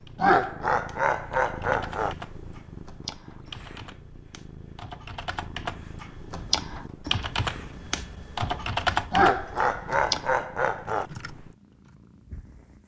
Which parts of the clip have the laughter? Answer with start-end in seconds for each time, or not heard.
0.1-2.1, 9.1-11.1.